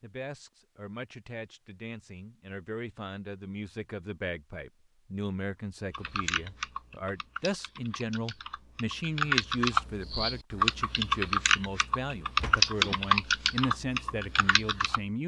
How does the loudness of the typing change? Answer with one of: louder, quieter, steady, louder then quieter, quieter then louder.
louder.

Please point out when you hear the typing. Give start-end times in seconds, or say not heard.
5.9-15.0.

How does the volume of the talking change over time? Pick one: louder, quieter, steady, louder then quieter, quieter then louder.
louder.